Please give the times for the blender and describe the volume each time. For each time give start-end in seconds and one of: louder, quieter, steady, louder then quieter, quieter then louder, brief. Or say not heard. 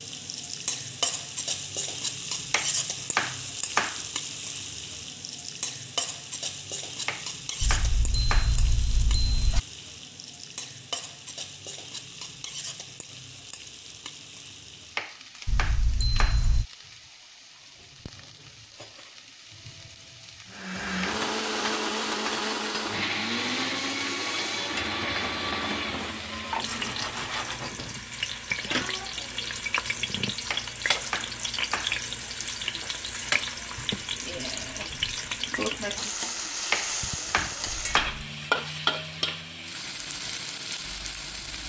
20.4-26.2 steady.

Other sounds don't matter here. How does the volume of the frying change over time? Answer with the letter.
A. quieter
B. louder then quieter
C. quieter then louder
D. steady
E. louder
C.